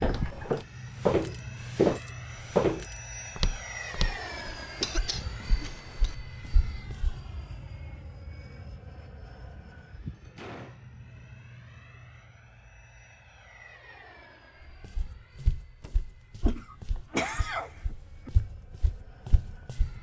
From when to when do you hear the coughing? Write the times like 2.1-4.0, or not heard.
4.8-6.2, 16.4-18.3.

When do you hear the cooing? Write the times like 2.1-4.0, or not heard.
not heard.